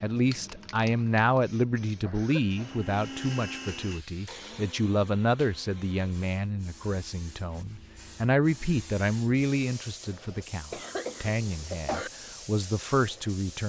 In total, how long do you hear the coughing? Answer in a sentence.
The coughing can be heard for 2 seconds in total.